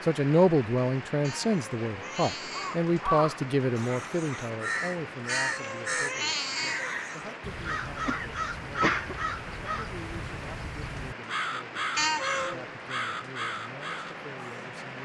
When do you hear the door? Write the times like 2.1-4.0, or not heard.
not heard.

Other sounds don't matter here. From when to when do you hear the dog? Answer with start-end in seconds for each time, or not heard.
not heard.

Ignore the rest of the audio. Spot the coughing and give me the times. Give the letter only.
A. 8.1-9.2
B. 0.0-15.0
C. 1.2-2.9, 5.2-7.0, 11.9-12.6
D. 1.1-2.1
A.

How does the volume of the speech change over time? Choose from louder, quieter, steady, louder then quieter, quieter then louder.
quieter.